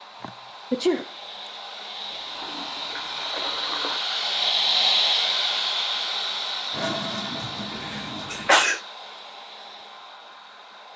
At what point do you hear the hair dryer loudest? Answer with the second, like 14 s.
5 s.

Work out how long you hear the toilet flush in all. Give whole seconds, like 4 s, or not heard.
4 s.